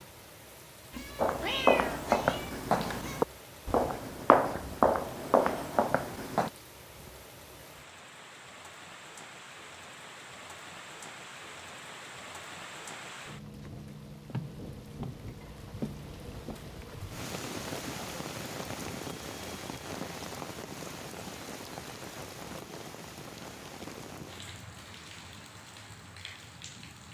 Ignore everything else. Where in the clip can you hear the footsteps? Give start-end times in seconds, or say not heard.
1.1-6.5.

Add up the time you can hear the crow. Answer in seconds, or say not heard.
not heard.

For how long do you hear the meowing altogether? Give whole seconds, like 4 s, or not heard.
2 s.